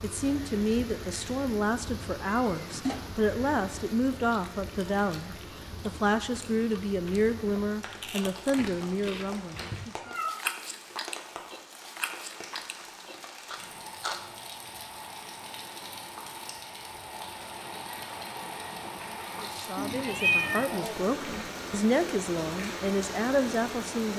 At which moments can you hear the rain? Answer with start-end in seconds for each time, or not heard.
0.0-24.1.